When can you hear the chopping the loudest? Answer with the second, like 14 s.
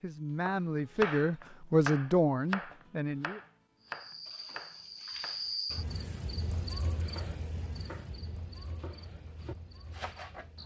1 s.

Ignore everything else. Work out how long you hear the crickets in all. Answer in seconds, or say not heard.
7 s.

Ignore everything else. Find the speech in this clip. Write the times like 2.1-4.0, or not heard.
0.0-3.4.